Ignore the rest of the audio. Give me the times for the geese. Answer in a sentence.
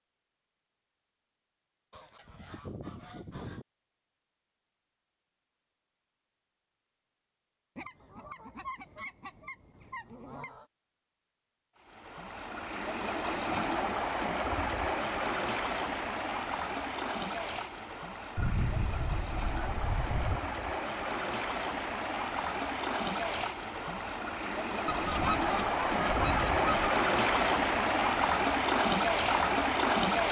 The geese can be heard from 1.9 to 3.6 s, from 7.8 to 10.7 s, from 18.4 to 20.4 s and from 24.9 to 26.9 s.